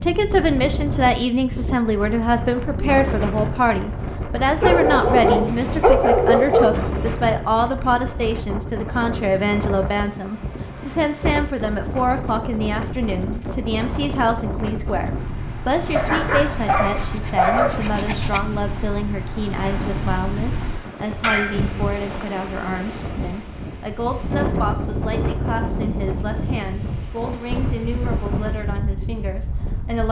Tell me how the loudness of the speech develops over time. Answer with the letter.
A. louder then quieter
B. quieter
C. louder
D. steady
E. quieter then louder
B.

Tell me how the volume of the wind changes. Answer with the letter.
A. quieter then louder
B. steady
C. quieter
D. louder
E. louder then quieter
B.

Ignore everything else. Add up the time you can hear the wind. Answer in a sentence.
You can hear the wind for 30 seconds altogether.